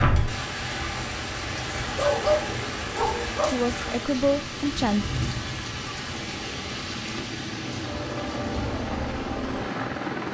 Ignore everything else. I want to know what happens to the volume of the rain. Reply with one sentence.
The volume of the rain goes down.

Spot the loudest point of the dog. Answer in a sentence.
The loudest moment of the dog is at 2 seconds.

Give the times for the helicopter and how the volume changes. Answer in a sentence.
You can hear the helicopter from 0.1 to 10.3 s, getting louder.